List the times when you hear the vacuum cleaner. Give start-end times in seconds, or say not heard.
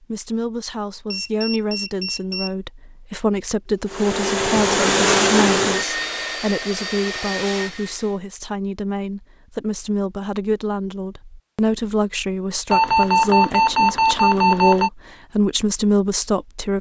3.7-8.2.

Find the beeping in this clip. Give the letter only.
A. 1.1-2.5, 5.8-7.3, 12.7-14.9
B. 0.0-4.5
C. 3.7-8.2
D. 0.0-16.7
A.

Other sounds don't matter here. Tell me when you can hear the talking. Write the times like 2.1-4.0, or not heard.
0.0-16.7.